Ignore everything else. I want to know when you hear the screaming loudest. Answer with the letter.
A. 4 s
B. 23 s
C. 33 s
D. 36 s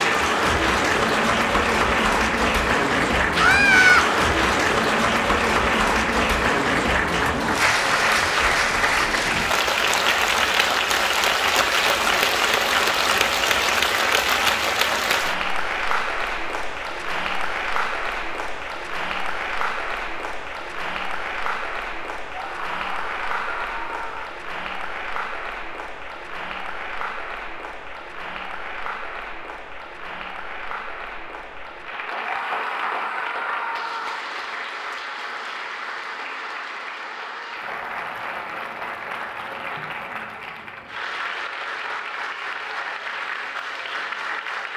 A.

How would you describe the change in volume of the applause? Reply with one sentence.
The loudness of the applause goes down.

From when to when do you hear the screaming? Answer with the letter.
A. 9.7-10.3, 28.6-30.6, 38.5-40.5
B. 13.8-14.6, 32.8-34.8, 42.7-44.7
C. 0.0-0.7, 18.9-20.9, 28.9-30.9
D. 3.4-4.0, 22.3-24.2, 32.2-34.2
D.